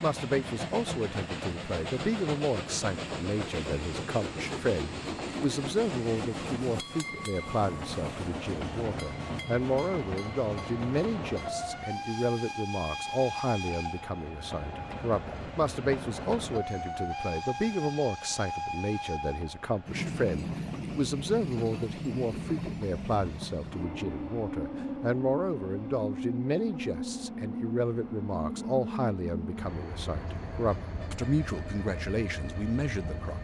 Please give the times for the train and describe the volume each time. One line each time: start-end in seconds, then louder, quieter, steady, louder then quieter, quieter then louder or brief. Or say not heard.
0.0-33.3 steady.